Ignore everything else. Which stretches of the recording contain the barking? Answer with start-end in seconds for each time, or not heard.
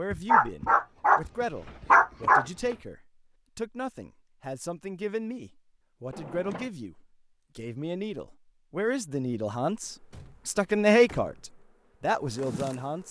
0.2-2.8.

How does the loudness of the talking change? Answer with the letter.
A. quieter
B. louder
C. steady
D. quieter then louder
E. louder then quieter
B.